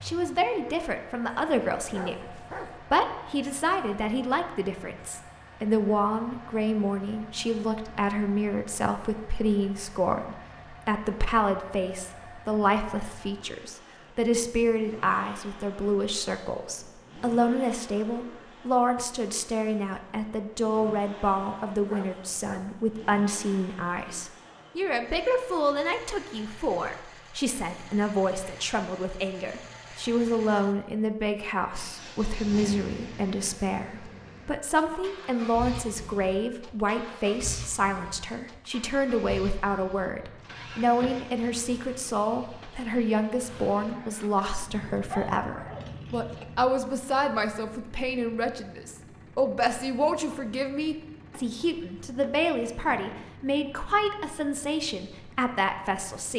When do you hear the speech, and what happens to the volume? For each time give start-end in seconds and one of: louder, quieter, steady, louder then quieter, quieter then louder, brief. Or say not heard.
0.0-56.3 steady.